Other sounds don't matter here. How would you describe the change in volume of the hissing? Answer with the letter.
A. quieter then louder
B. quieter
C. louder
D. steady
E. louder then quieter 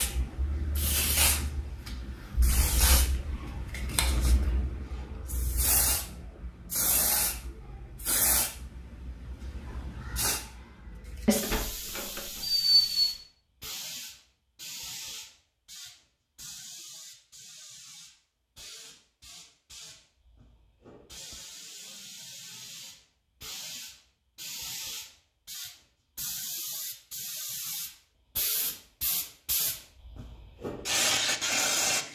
A.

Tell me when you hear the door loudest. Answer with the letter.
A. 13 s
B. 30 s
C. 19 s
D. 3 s
A.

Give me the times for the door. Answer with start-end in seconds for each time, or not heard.
11.4-13.2.